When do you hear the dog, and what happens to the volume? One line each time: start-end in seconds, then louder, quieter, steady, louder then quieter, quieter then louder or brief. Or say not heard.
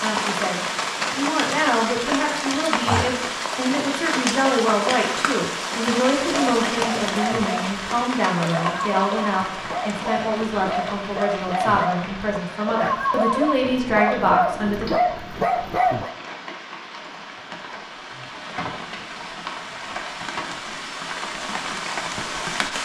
6.0-16.1 louder.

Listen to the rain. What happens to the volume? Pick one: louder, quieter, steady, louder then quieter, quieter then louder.
quieter then louder.